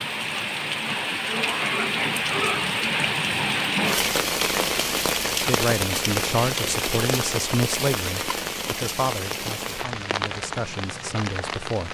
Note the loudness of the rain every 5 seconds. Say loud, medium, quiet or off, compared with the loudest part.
loud, loud, medium.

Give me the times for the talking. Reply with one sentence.
You can hear the talking from 5.4 to 11.8 s.